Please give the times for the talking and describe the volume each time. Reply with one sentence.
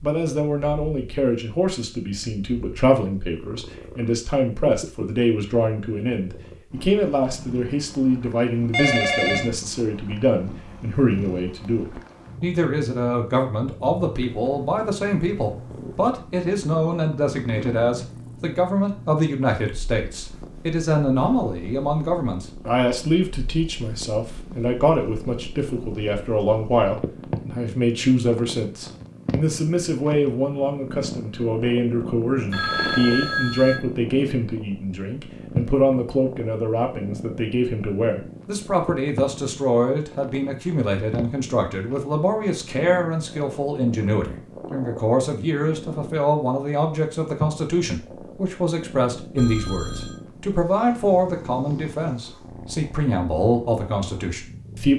You can hear the talking from 0.0 to 54.9 s, at a steady volume.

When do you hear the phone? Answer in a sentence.
You can hear the phone from 8.7 to 9.5 s, from 32.5 to 33.8 s and from 49.4 to 50.2 s.